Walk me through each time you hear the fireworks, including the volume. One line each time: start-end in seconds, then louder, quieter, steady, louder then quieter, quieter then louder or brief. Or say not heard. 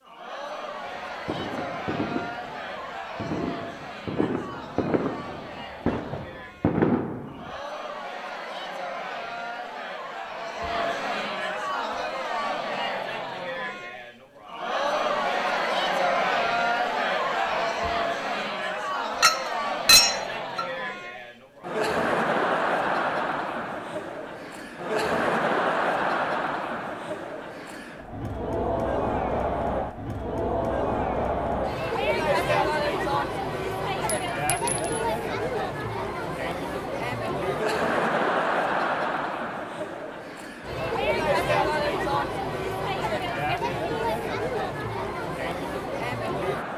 0.8-7.5 louder.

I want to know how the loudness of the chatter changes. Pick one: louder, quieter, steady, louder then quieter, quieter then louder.
louder.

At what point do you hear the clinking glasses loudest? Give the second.
20 s.